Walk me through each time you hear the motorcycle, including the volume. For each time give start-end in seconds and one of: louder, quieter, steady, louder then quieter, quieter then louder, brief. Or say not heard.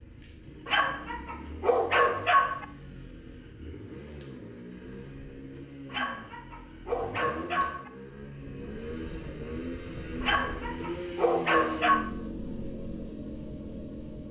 0.0-14.2 louder.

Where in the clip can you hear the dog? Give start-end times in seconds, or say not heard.
0.7-2.6, 5.9-7.9, 10.2-12.1.